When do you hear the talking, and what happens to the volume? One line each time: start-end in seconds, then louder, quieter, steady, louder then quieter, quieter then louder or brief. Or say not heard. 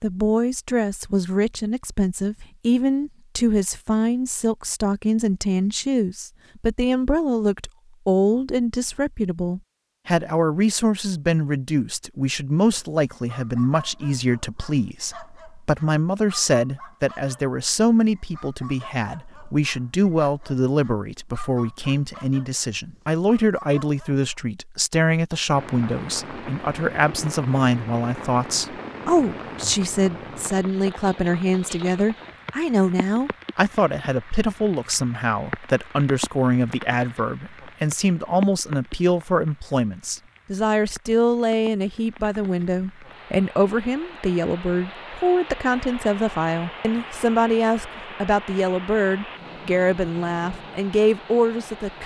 0.0-52.0 steady.